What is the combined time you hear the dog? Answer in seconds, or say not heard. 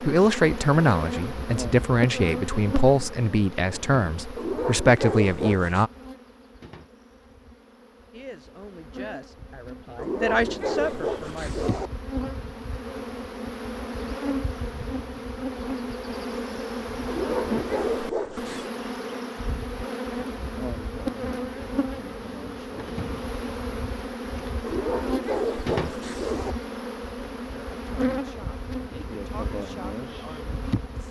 7 s.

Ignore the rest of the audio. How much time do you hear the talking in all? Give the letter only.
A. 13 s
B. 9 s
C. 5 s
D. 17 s
A.